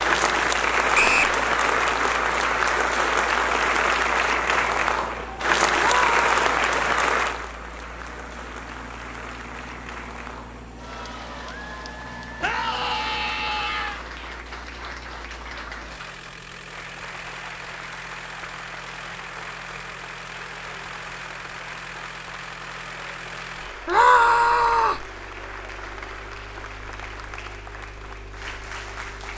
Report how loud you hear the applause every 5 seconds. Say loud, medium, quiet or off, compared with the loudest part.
loud, loud, quiet, quiet, quiet, quiet.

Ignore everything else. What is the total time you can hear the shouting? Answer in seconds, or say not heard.
3 s.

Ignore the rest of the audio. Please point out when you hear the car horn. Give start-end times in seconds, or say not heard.
not heard.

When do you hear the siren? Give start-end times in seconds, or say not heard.
not heard.